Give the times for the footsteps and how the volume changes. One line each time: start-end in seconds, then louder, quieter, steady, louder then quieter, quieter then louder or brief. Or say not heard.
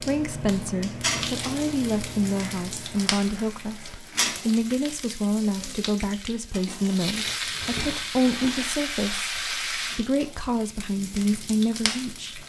not heard.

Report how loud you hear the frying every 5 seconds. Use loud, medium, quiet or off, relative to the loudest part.
loud, loud, medium.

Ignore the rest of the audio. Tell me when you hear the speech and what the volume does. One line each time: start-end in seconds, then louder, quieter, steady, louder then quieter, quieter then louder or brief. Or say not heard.
0.0-12.4 steady.